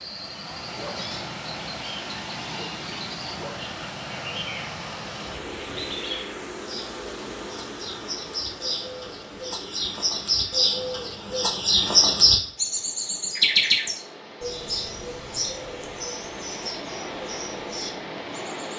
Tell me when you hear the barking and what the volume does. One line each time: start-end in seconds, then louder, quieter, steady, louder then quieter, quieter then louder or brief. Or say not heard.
not heard.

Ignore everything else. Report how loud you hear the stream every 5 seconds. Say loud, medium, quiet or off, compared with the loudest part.
loud, loud, medium, loud.